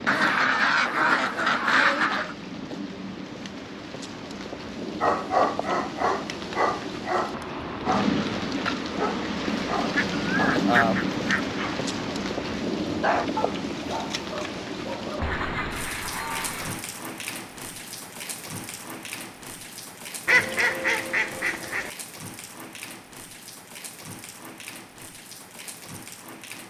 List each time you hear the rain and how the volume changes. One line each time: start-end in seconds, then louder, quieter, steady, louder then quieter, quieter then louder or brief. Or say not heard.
0.0-26.6 louder then quieter.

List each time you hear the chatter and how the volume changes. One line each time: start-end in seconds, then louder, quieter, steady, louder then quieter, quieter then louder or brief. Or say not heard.
not heard.